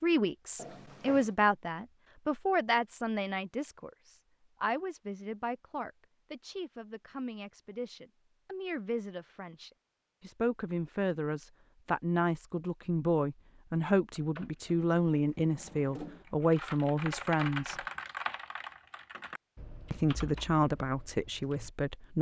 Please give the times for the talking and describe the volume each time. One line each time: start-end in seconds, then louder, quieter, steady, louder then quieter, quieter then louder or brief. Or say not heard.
0.0-17.8 quieter then louder
19.9-22.1 brief.